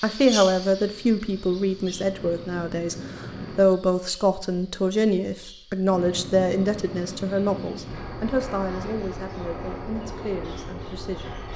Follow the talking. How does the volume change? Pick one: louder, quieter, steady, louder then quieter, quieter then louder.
quieter.